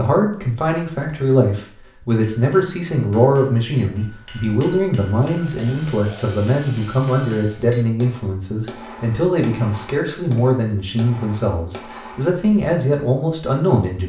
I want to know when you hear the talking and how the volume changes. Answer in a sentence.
You can hear the talking from 0.0 to 14.0 s, at a steady volume.